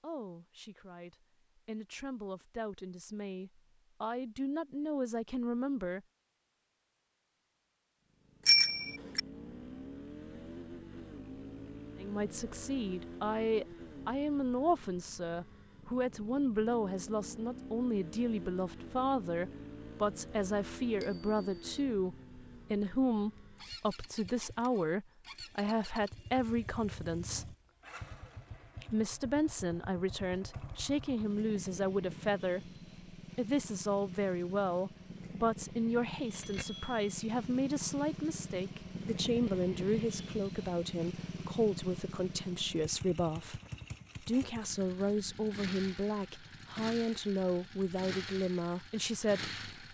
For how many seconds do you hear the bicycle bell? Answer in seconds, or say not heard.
2 s.